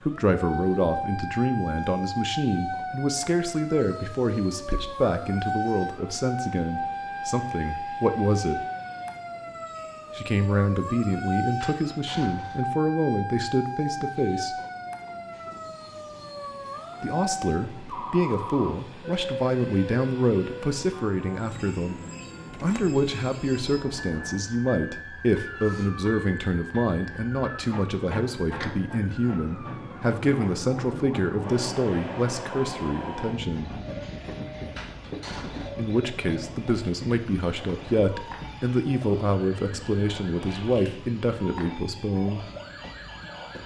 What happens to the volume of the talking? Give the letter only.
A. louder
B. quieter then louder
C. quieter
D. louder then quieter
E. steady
E.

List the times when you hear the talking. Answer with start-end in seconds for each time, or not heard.
0.0-8.6, 10.2-14.6, 17.0-22.0, 22.6-33.7, 35.8-42.4.